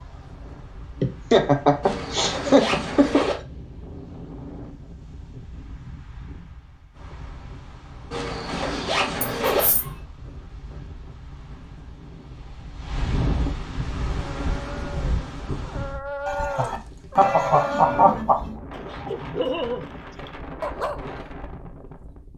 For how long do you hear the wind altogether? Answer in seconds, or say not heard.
22 s.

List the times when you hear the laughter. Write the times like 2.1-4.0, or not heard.
1.0-3.2, 9.2-9.9, 16.2-18.6.